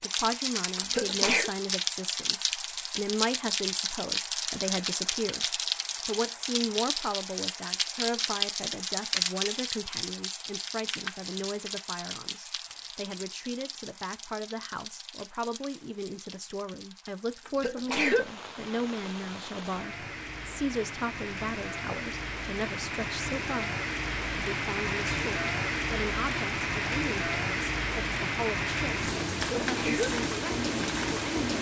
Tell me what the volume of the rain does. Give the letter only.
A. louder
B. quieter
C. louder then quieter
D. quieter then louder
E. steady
D.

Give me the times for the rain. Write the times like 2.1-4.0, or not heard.
0.0-31.5.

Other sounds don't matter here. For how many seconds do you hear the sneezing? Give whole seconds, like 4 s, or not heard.
2 s.